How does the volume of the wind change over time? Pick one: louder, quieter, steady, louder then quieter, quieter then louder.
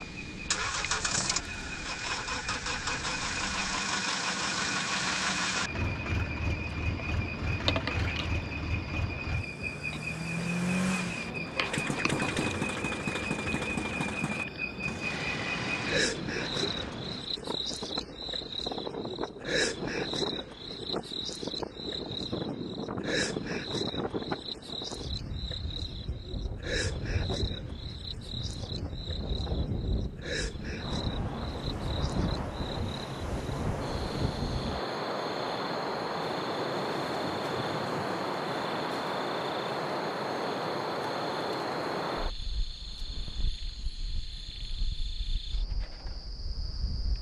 louder.